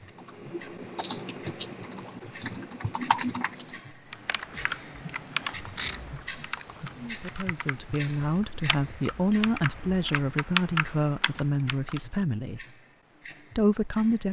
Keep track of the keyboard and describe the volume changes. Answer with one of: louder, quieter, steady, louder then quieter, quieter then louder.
quieter then louder.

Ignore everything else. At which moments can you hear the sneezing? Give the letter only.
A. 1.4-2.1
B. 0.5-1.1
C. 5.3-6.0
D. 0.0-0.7
C.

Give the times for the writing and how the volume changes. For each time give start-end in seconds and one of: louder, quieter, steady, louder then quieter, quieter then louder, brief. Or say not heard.
not heard.